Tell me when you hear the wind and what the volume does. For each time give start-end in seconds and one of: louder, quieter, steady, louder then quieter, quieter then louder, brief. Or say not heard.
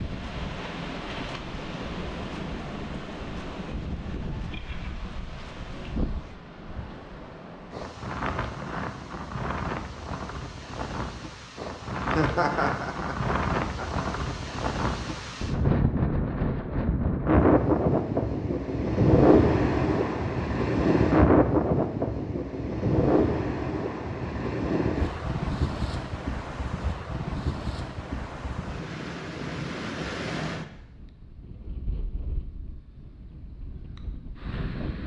0.0-35.0 louder then quieter.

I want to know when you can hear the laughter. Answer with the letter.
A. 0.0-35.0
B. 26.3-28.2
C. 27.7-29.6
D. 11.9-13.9
D.